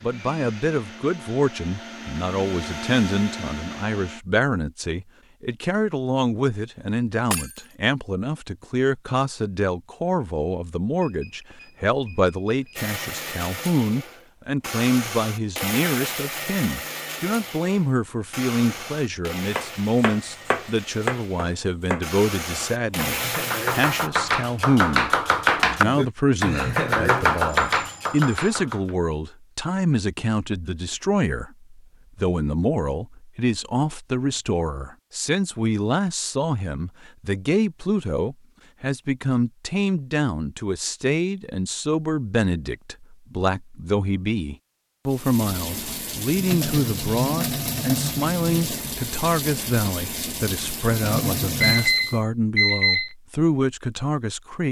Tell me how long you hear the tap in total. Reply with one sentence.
The tap can be heard for 7 seconds in total.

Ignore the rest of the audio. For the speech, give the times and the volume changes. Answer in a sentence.
You can hear the speech from 0.0 to 54.6 s, at a steady volume.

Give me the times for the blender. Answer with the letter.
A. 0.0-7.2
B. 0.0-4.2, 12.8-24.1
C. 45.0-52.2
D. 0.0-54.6
B.